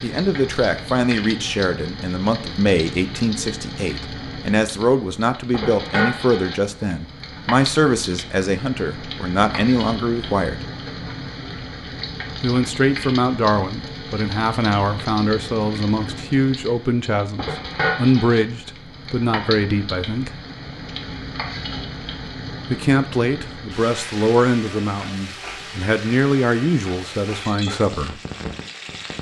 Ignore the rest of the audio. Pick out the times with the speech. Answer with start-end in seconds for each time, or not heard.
0.0-10.7, 12.4-20.4, 22.7-28.2.